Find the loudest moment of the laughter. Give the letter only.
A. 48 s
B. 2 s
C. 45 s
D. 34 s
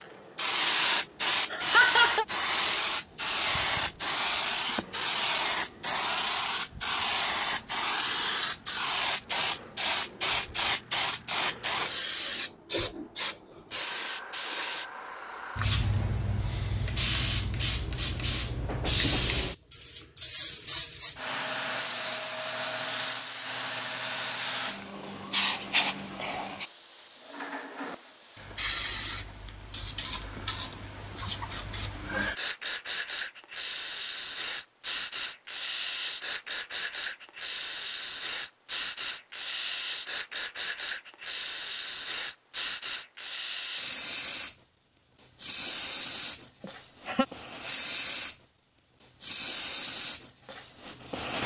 B.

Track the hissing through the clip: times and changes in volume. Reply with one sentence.
The hissing can be heard from 0.0 to 51.4 s, at a steady volume.